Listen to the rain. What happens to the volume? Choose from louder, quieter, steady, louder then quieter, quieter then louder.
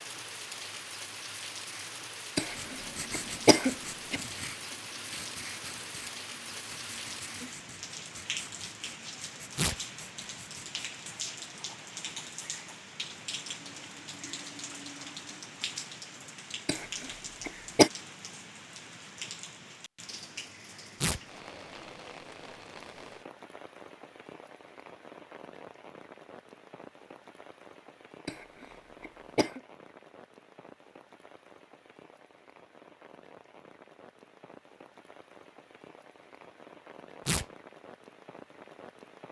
quieter.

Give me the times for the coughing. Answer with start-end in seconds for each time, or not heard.
2.4-4.2, 16.6-17.9, 28.2-29.6.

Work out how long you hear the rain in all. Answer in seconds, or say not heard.
39 s.